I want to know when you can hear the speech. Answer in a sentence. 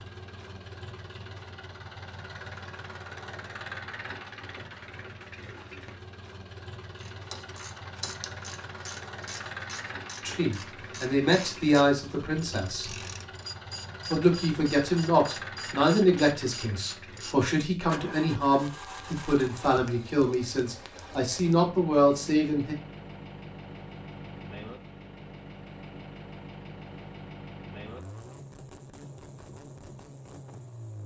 The speech can be heard from 10.2 to 12.9 s and from 14.1 to 22.8 s.